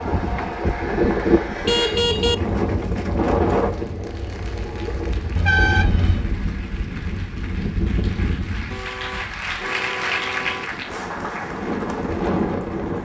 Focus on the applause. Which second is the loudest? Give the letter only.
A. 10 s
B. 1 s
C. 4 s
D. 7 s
A.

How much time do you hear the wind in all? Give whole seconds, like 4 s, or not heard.
13 s.